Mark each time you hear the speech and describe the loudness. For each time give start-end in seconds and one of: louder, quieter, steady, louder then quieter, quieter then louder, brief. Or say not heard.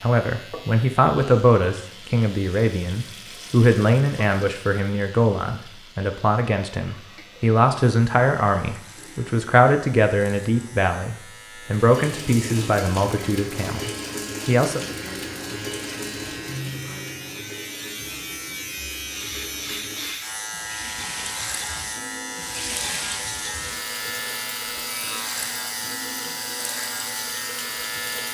0.0-14.8 steady.